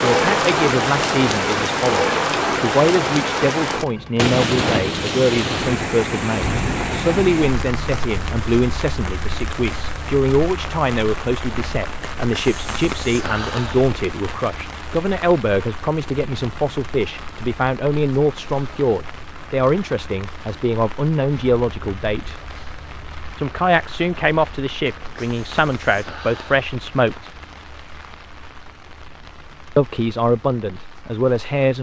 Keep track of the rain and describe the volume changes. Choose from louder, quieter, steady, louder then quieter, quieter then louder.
quieter.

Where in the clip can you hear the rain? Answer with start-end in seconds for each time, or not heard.
0.0-31.7.